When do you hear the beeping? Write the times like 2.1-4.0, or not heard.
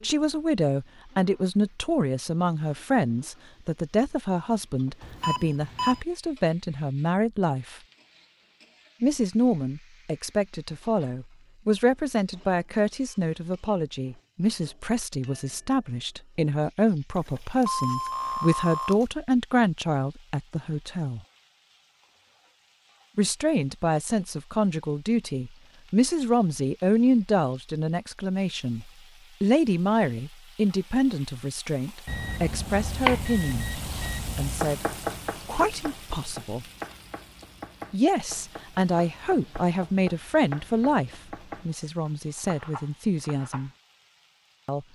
5.0-6.0, 17.1-19.1, 32.0-34.6.